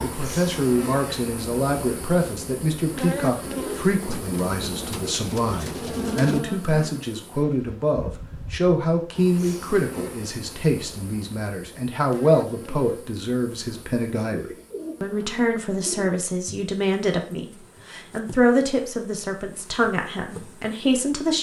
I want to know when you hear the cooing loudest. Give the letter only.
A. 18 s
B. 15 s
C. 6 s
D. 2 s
C.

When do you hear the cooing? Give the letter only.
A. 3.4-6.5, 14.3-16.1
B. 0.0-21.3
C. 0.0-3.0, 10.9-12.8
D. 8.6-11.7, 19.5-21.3
A.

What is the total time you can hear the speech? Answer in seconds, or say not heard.
21 s.